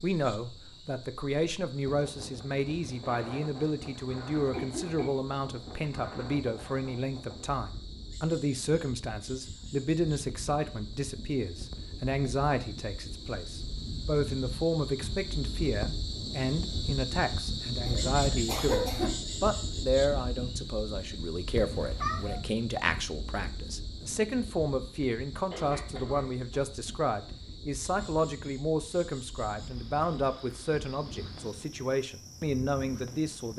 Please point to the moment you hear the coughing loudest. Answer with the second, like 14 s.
19 s.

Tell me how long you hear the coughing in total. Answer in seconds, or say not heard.
4 s.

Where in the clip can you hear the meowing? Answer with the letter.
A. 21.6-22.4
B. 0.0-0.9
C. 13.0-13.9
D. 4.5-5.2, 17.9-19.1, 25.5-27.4
A.